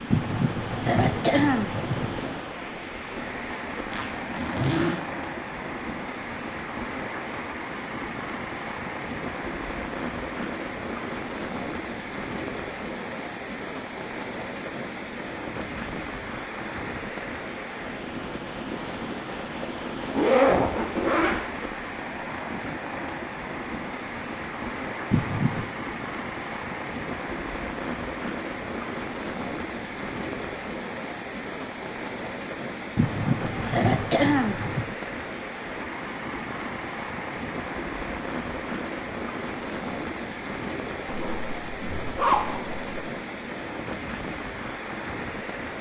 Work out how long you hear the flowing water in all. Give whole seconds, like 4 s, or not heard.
46 s.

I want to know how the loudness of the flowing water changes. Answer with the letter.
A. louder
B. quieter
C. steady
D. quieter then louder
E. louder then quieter
C.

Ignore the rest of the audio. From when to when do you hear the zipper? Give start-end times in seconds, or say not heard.
3.9-5.0, 20.1-21.4, 41.0-43.0.